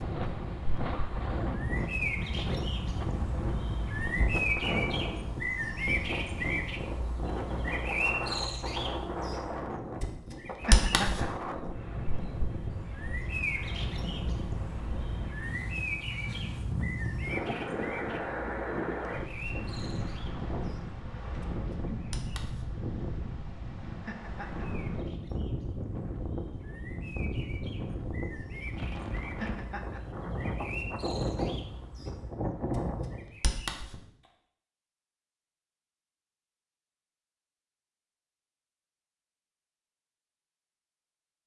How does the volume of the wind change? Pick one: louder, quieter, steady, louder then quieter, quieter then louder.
steady.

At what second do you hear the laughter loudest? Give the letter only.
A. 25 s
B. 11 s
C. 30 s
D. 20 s
B.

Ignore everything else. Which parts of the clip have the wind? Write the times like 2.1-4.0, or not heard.
0.0-33.4.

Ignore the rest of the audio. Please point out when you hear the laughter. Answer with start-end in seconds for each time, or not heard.
10.7-11.2, 24.1-24.6, 29.4-30.0.